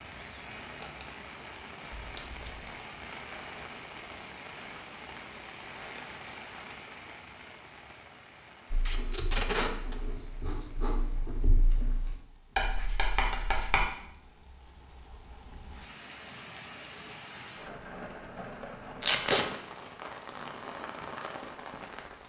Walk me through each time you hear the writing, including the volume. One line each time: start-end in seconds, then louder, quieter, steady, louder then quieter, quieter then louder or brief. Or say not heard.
8.7-13.8 louder.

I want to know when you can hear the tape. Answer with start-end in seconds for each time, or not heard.
1.9-2.7, 8.8-9.9, 19.0-19.4.